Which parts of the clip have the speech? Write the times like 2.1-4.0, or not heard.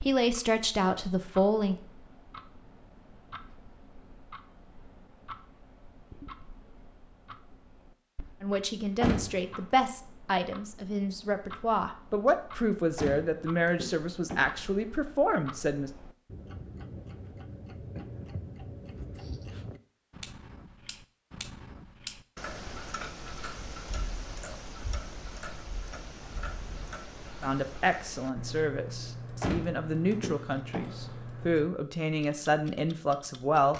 0.0-1.8, 8.4-15.9, 27.4-33.7.